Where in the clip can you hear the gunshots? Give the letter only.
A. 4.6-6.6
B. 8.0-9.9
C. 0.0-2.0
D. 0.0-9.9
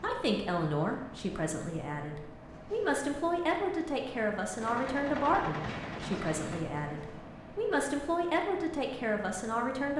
A.